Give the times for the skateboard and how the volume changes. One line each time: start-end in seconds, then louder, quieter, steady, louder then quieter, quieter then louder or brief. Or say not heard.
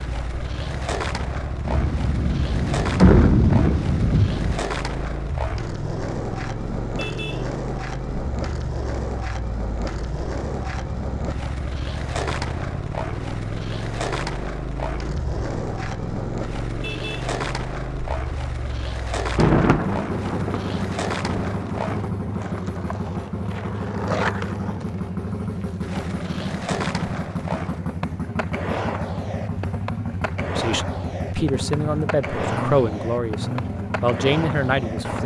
0.0-35.2 steady.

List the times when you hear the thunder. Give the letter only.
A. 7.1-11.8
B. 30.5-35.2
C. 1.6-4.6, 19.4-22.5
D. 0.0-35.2
C.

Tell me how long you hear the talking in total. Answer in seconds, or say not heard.
5 s.